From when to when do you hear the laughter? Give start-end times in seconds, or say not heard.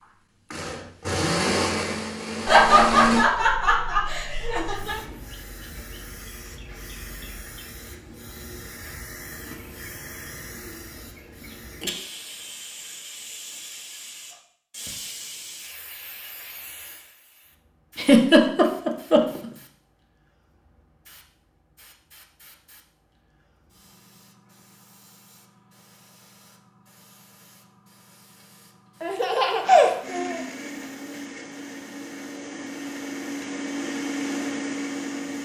2.5-5.0, 17.9-19.4, 29.0-30.4.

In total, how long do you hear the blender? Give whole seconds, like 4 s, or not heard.
9 s.